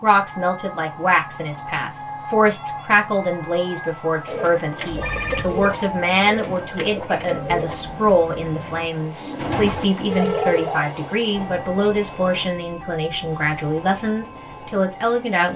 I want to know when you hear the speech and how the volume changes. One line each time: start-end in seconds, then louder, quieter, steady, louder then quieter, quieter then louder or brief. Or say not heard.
0.0-15.5 steady.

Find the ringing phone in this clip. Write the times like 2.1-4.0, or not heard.
4.8-5.8, 10.1-10.8.